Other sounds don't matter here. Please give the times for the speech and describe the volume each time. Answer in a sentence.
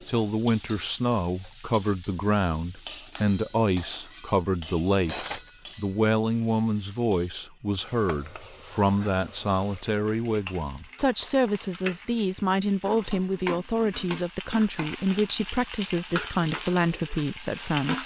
You can hear the speech from 0.1 to 18.0 s, at a steady volume.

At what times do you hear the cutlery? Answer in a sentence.
You can hear the cutlery from 5.0 to 5.5 s.